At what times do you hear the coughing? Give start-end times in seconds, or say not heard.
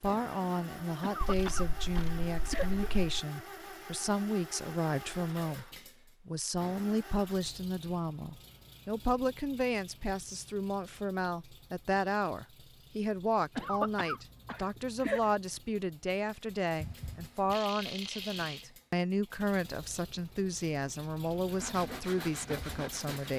1.0-3.0, 13.6-15.3.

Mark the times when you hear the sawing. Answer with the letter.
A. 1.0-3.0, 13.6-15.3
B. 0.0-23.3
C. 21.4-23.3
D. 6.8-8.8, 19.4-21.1
C.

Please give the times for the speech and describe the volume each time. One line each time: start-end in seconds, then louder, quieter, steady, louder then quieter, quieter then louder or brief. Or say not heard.
0.0-23.3 steady.